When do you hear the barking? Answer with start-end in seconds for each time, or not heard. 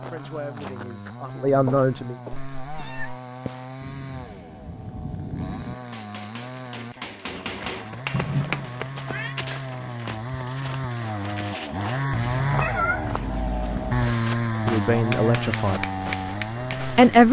not heard.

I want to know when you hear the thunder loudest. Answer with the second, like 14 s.
5 s.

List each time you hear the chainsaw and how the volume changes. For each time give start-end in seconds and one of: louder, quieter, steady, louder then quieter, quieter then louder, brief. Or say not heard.
0.0-17.2 louder.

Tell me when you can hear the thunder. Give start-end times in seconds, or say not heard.
3.8-5.8.